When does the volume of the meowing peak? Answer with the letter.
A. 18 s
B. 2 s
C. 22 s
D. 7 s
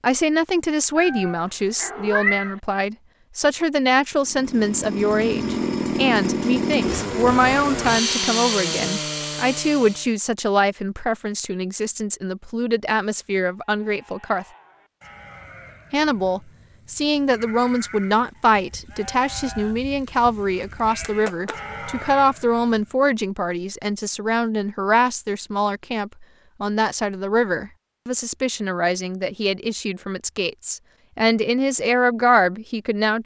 B.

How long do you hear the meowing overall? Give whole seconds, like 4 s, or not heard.
3 s.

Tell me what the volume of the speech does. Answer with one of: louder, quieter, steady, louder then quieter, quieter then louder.
steady.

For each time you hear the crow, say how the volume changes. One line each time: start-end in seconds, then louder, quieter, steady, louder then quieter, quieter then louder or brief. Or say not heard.
not heard.